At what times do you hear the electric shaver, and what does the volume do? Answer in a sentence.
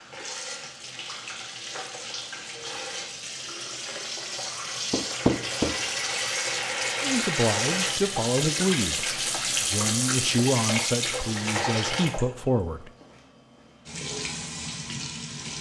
You can't hear the electric shaver here.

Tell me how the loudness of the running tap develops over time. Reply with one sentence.
The loudness of the running tap goes up, then down.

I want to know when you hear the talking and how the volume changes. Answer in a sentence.
The talking can be heard from 7.0 to 12.9 s, at a steady volume.